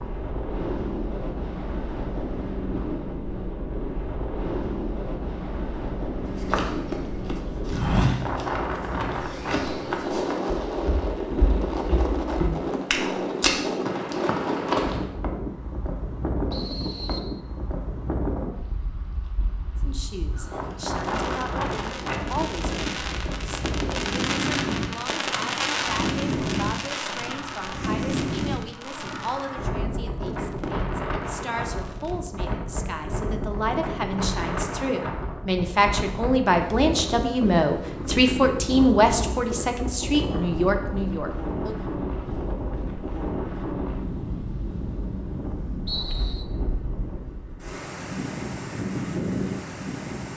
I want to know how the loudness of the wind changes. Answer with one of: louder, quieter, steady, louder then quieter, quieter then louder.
steady.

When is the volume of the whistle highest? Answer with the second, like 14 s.
46 s.